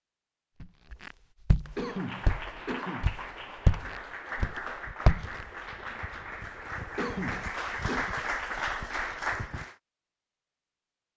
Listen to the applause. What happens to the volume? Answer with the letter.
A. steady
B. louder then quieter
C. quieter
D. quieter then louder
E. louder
E.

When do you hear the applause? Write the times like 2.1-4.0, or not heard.
1.6-9.8.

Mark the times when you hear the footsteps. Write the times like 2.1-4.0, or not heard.
0.6-5.5.